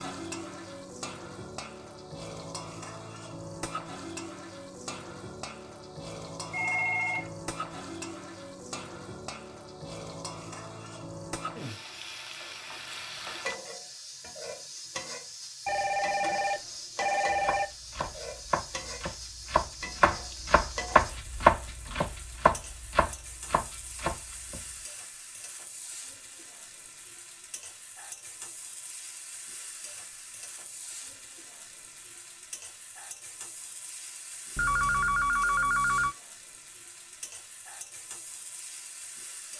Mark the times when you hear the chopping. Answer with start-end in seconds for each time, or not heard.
17.2-24.9.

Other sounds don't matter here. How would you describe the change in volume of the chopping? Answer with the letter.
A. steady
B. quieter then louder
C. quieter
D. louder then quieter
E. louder
D.